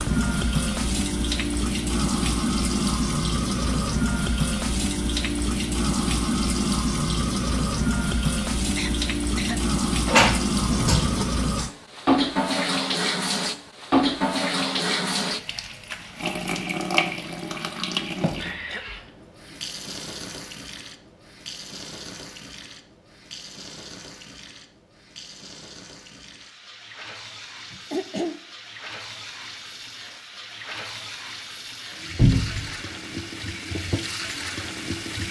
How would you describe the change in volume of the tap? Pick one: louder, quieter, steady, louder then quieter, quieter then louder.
quieter then louder.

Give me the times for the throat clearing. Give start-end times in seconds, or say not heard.
8.8-10.2, 18.6-19.6, 27.7-28.4.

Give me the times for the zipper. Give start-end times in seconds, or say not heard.
not heard.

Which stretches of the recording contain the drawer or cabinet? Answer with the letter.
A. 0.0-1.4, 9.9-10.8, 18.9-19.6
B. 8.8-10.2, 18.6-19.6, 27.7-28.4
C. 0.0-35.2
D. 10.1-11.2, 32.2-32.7
D.